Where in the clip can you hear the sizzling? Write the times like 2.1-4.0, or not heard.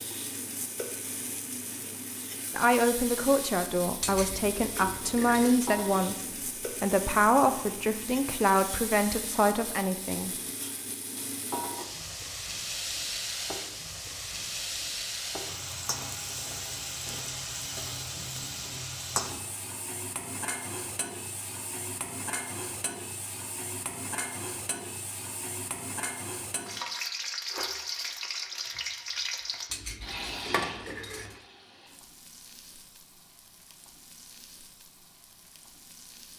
0.0-36.3.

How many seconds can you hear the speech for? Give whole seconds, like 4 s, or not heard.
8 s.